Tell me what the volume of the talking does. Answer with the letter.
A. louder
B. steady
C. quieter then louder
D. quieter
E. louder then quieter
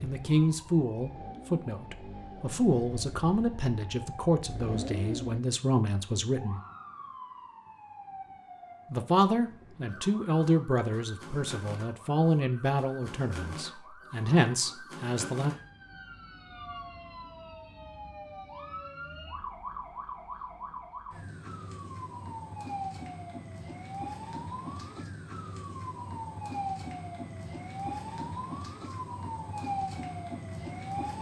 B.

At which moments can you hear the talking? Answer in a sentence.
You can hear the talking from 0.0 to 6.6 s and from 8.9 to 15.6 s.